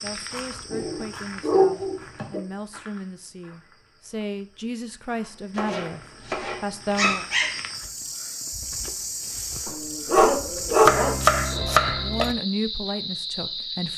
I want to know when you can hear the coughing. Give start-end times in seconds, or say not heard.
not heard.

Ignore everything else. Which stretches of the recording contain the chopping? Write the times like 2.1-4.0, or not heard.
0.5-2.4, 5.5-7.2, 10.8-12.3.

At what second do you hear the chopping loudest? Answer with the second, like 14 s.
11 s.